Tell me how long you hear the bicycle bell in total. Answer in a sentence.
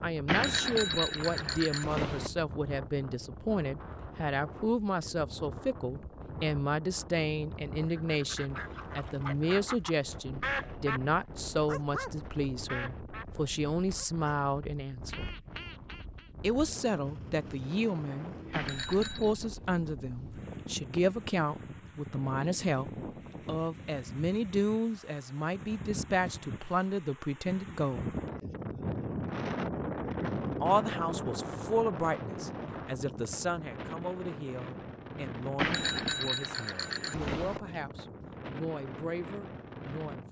The bicycle bell can be heard for 5 seconds in total.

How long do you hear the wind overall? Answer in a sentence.
You can hear the wind for 40 seconds altogether.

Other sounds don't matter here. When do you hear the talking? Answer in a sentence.
You can hear the talking from 0.0 to 15.2 s, from 16.4 to 28.1 s and from 30.6 to 40.2 s.